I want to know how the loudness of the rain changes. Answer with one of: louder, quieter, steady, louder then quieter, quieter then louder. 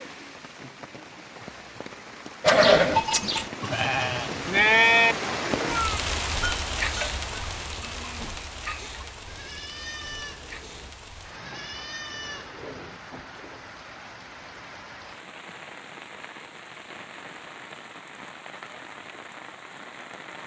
louder then quieter.